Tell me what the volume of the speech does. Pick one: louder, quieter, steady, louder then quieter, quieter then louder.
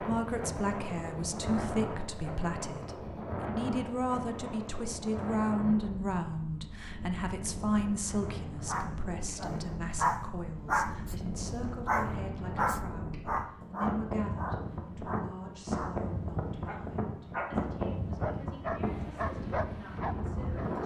quieter.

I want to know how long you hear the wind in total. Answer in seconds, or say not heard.
21 s.